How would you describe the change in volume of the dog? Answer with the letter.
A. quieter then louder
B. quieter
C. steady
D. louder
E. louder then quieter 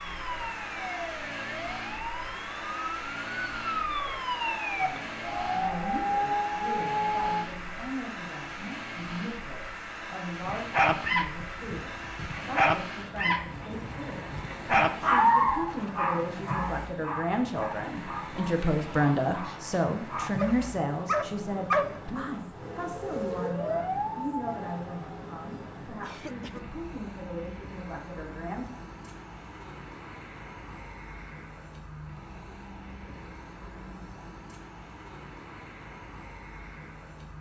A.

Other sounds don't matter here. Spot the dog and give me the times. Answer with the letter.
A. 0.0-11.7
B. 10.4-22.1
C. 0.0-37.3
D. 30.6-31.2
B.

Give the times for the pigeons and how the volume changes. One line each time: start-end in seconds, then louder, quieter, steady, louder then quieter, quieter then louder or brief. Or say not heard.
not heard.